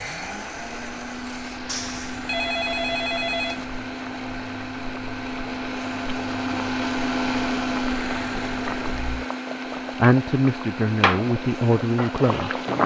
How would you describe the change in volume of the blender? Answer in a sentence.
The loudness of the blender goes up, then down.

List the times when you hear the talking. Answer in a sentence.
The talking can be heard from 10.0 to 12.6 s.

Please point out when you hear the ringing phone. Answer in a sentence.
You can hear the ringing phone from 1.6 to 3.6 s.